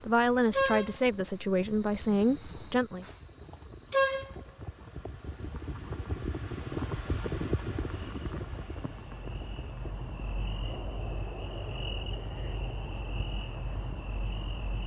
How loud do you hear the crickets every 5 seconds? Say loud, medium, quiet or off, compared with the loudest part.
loud, quiet, medium.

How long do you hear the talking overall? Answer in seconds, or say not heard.
3 s.